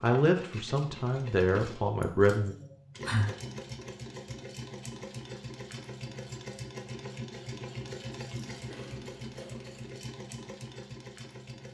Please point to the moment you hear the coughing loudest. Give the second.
3 s.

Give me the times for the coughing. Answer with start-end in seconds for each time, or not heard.
2.0-3.5, 8.7-9.8.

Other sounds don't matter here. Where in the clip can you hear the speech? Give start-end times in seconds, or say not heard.
0.0-2.5.